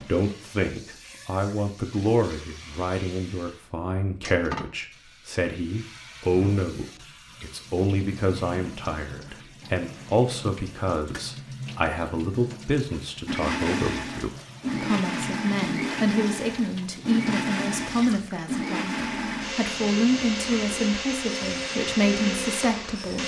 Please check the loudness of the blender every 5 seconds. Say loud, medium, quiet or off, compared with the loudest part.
off, off, loud, loud, loud.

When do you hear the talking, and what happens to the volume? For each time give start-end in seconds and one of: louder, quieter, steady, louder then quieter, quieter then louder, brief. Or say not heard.
0.0-23.2 steady.